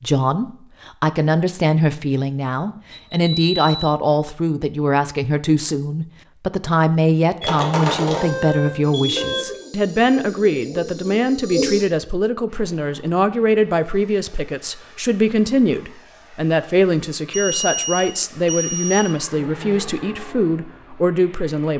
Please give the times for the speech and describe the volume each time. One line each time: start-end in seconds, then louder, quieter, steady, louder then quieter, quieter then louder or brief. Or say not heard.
0.0-21.7 steady.